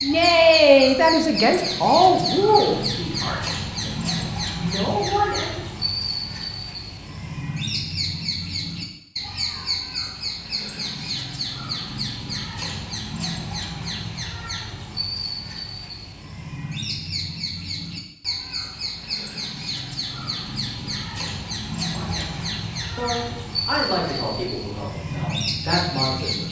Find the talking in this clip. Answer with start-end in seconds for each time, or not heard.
0.0-5.6, 21.9-26.4.